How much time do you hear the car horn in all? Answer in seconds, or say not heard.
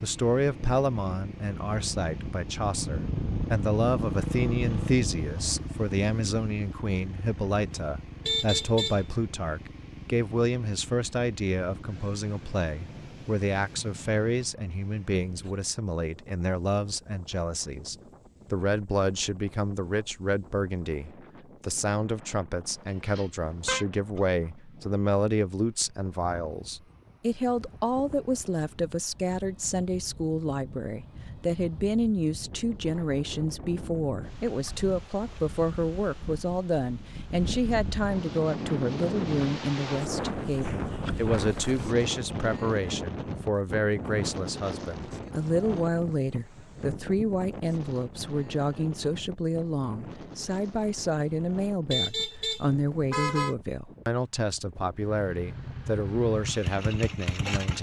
3 s.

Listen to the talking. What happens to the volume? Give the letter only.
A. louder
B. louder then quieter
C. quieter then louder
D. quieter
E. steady
E.